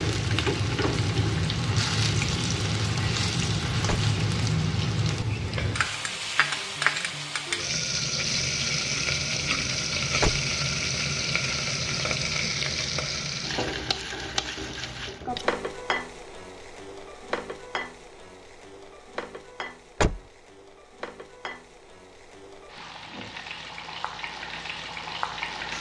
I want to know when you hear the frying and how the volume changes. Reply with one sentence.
The frying can be heard from 0.0 to 25.7 s, getting quieter.